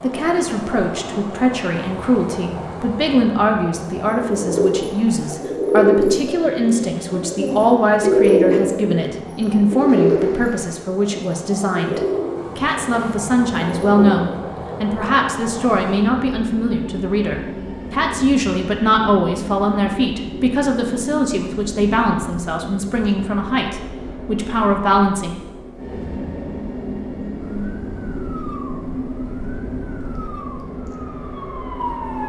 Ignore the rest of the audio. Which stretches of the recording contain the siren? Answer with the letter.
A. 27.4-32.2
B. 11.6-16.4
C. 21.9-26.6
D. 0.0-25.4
A.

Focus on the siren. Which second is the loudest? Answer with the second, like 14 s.
32 s.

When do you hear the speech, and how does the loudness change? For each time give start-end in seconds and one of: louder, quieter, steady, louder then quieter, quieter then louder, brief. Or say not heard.
0.0-25.4 steady.